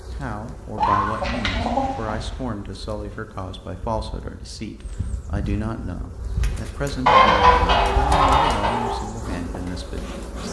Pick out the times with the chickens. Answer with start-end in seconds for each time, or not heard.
0.8-2.4, 7.0-8.9.